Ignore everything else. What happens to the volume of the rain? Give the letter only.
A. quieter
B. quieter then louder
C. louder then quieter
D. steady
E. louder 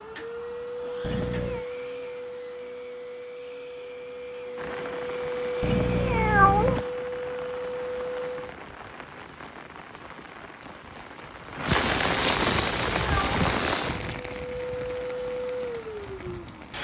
C.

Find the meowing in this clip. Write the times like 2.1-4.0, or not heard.
1.0-1.6, 5.6-6.8, 12.5-13.8.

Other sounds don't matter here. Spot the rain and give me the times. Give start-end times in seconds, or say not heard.
4.5-16.7.